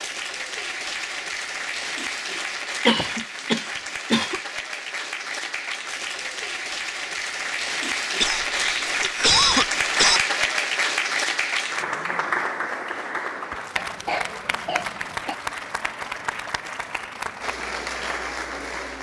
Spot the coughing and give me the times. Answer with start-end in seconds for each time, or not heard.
2.9-4.4, 8.2-10.2, 13.8-15.3.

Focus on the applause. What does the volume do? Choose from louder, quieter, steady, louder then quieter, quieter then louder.
louder then quieter.